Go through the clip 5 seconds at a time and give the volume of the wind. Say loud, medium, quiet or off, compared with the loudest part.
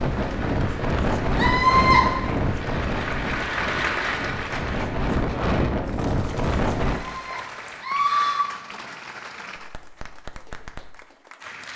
loud, loud, off.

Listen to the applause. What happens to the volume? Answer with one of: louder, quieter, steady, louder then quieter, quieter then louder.
louder then quieter.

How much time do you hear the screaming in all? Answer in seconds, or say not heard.
2 s.